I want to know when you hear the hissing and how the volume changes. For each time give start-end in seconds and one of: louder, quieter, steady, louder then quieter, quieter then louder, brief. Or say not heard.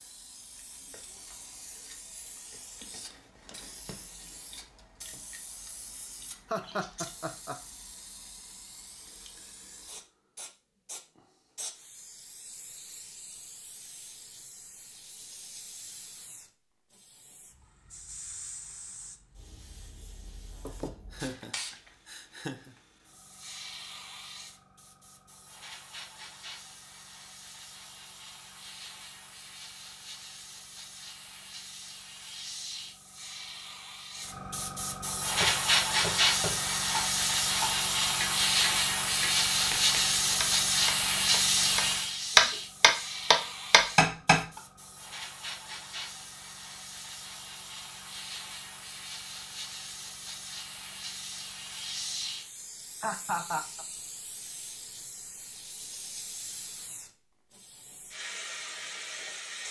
0.0-59.6 louder then quieter.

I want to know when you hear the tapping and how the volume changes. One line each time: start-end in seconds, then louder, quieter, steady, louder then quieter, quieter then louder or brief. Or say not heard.
35.4-44.4 louder.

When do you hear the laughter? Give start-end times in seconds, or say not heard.
6.5-7.5, 20.6-22.8, 53.0-53.9.